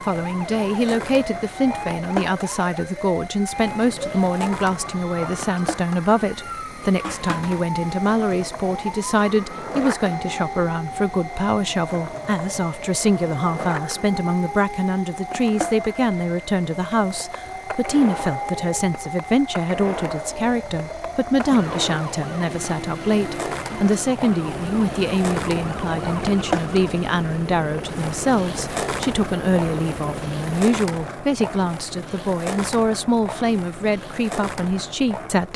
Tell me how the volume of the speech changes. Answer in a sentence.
The volume of the speech stays about the same.